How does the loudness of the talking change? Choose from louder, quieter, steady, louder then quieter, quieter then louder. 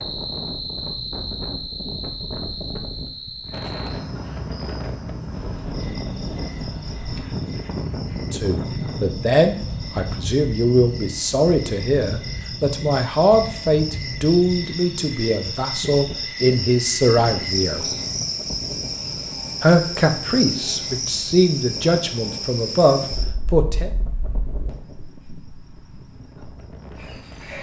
steady.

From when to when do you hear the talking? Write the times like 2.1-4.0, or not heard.
8.3-17.9, 19.6-23.9.